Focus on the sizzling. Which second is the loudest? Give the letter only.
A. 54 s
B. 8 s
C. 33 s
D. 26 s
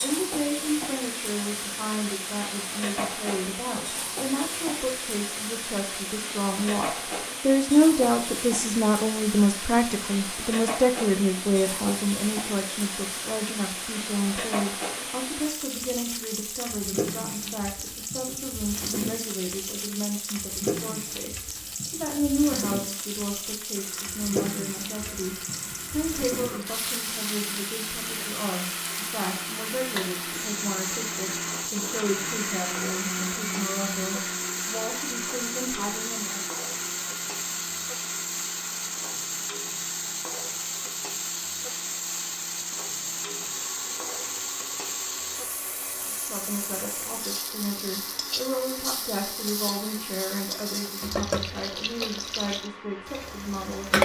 A.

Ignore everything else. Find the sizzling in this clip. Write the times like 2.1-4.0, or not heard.
0.0-54.0.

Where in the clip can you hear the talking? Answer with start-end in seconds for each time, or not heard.
0.0-36.5, 46.2-54.0.